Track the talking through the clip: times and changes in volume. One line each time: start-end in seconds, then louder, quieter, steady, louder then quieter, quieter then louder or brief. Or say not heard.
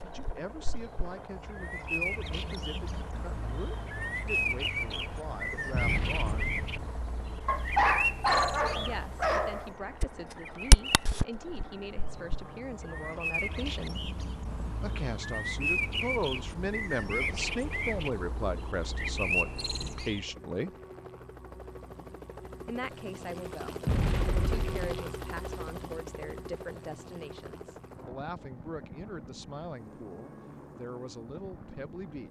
0.0-6.5 steady
8.8-14.1 steady
14.8-20.8 steady
22.6-32.2 steady.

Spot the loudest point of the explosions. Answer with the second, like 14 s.
24 s.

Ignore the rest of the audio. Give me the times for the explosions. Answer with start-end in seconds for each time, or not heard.
5.7-6.9, 23.9-24.9.